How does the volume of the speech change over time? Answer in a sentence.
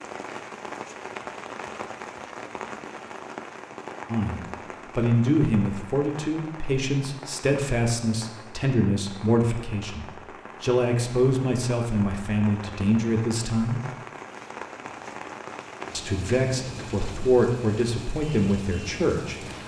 The loudness of the speech stays about the same.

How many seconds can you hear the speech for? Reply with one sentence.
The speech can be heard for 13 seconds in total.